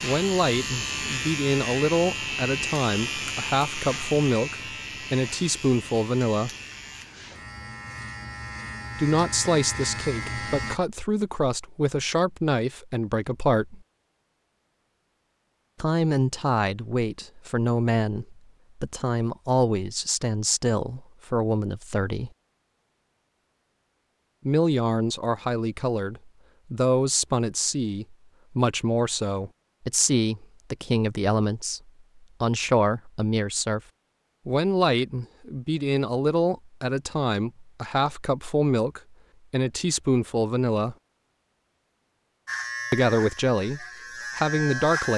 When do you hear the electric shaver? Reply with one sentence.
The electric shaver can be heard from 0.0 to 10.8 s and from 42.5 to 45.1 s.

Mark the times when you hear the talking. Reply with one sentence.
You can hear the talking from 0.0 to 6.5 s, from 8.9 to 13.8 s, from 15.8 to 22.3 s, from 24.4 to 33.8 s, from 34.5 to 41.0 s and from 42.9 to 45.1 s.